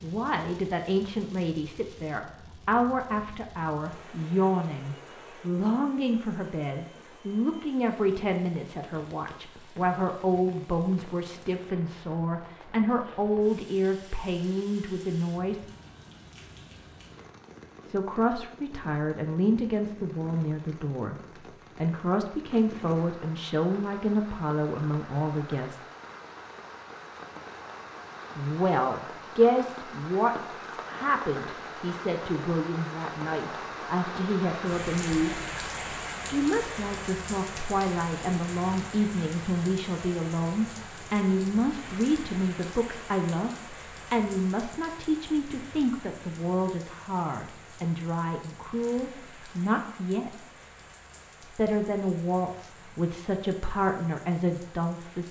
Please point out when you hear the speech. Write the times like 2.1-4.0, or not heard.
0.0-15.7, 17.9-21.1, 21.8-25.8, 28.4-35.4, 36.3-50.3, 51.5-55.2.